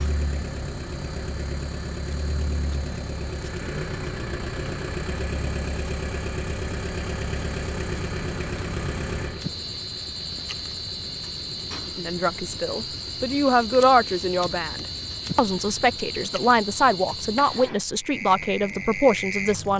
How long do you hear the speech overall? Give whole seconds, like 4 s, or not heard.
8 s.